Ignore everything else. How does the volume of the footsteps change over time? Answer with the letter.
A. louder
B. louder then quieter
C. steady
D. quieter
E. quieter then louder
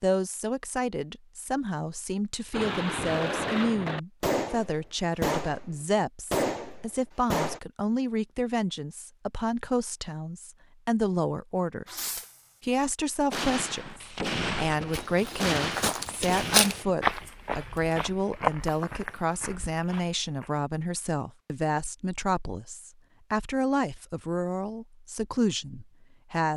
B.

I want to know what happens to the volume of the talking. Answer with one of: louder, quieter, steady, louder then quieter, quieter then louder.
steady.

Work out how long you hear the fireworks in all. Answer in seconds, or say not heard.
10 s.